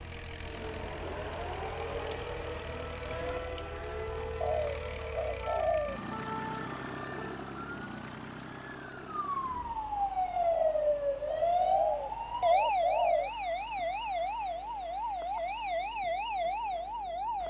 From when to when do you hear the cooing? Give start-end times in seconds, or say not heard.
4.4-6.0, 10.5-13.3.